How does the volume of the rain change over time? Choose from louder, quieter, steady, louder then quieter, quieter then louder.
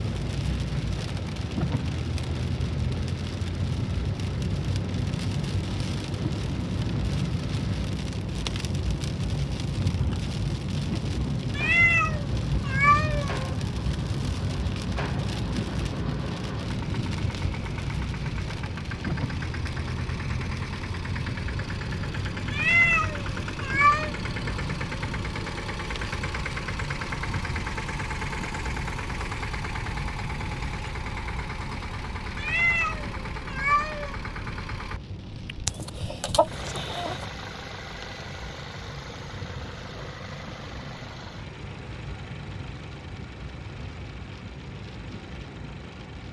quieter.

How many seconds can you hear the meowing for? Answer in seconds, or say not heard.
5 s.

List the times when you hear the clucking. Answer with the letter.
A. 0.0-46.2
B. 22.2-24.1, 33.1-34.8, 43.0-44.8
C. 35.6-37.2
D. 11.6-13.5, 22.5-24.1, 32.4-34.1
C.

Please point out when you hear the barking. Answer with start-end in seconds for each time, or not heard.
not heard.